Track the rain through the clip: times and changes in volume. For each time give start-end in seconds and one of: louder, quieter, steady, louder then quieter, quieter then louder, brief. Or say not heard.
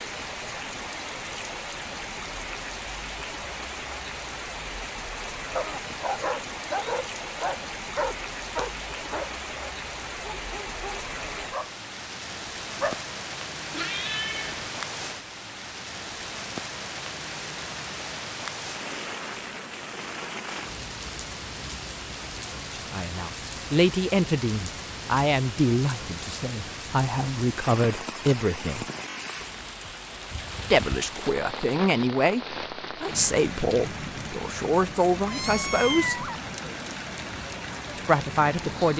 0.0-38.9 steady.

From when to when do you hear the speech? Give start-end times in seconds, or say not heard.
22.8-28.9, 30.7-36.2, 38.0-38.9.